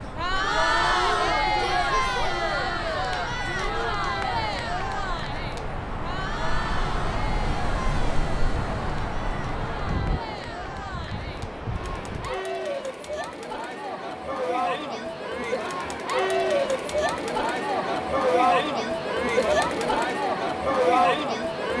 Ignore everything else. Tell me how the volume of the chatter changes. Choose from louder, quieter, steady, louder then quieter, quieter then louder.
quieter then louder.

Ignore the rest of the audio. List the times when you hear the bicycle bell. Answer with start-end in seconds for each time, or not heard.
not heard.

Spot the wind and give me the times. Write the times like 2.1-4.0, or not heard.
0.0-12.4.